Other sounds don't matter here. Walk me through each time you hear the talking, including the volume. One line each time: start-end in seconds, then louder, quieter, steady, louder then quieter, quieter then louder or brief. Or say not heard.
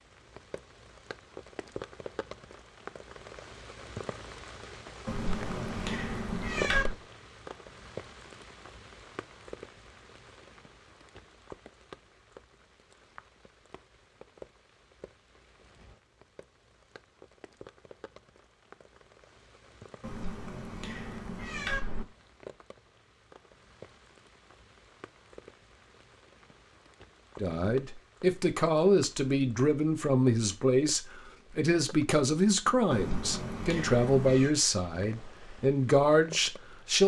27.4-37.0 steady.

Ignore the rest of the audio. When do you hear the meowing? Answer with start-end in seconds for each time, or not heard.
5.0-7.0, 20.0-22.1, 32.9-34.5.